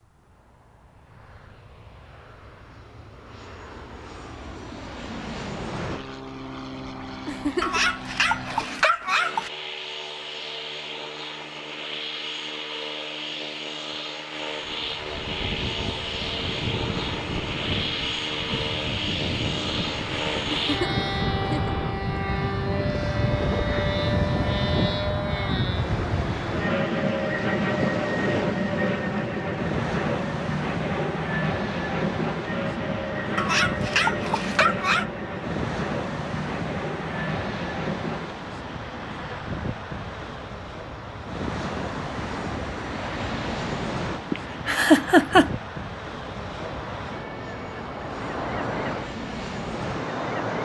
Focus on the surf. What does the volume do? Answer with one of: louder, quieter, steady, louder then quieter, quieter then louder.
steady.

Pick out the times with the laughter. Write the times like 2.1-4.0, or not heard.
7.2-7.8, 20.6-21.8, 44.3-45.5.